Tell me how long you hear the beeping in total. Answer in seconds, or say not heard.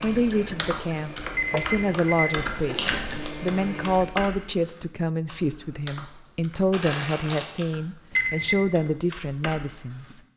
2 s.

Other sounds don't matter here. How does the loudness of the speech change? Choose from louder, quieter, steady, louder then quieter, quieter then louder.
steady.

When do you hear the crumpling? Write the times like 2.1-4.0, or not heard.
2.5-3.3, 6.7-7.7.